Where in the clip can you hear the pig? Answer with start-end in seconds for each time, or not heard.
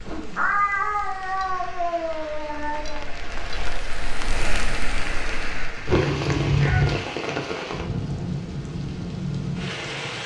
not heard.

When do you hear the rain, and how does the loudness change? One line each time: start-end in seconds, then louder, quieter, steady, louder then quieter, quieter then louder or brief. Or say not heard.
0.0-10.2 louder.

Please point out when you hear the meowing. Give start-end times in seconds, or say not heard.
0.3-3.0, 5.8-7.0.